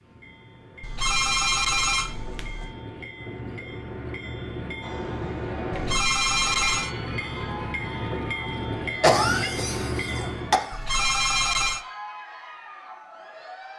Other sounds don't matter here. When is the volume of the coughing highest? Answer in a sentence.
The loudest moment of the coughing is at 9 seconds.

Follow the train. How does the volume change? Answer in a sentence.
The loudness of the train goes up.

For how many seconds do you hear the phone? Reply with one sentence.
The phone can be heard for 4 seconds in total.